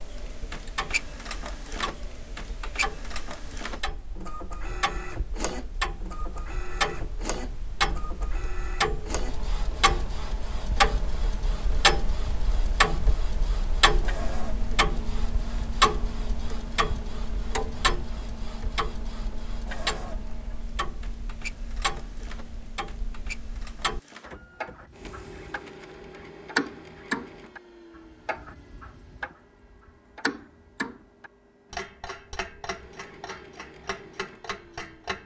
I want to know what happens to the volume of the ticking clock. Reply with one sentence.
The volume of the ticking clock goes up, then down.